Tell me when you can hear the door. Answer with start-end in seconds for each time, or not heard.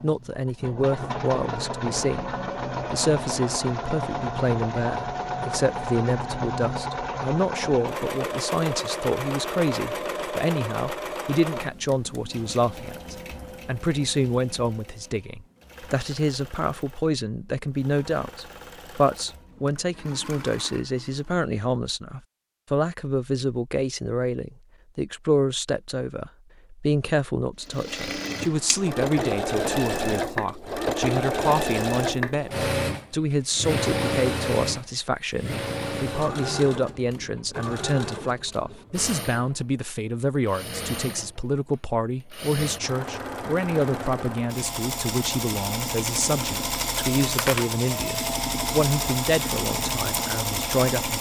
not heard.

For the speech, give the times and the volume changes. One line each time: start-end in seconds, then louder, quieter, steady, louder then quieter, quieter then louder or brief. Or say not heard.
0.0-51.1 steady.